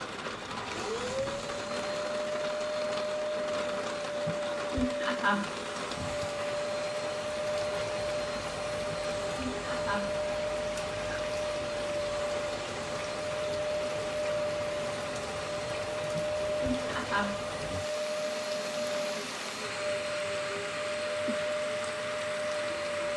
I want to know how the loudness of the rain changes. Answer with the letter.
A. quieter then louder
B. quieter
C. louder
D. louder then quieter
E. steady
E.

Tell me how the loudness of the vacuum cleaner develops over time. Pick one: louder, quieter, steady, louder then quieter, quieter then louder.
steady.